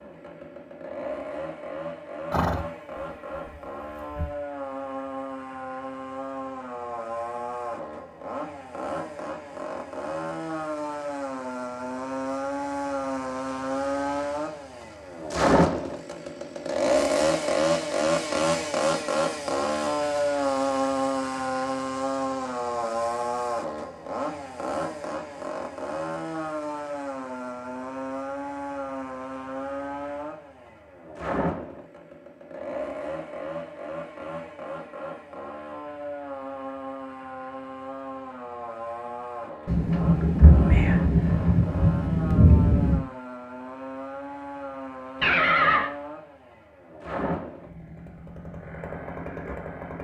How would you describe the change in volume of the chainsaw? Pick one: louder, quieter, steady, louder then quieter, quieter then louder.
louder then quieter.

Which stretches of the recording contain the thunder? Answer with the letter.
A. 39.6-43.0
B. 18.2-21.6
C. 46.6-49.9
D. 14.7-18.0
A.